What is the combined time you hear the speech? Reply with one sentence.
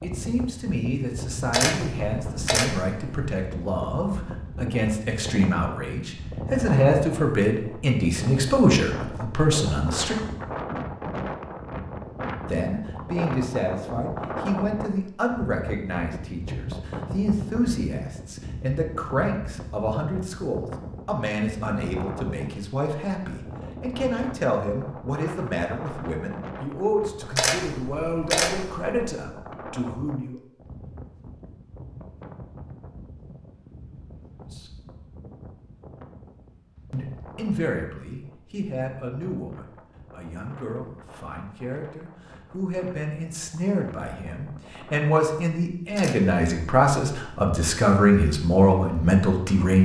The speech can be heard for 41 seconds in total.